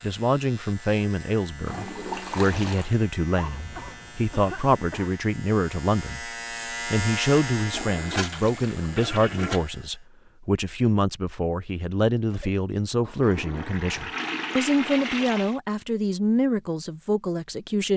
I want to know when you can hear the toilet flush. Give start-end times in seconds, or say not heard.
1.6-2.9, 7.7-9.7, 13.2-15.6.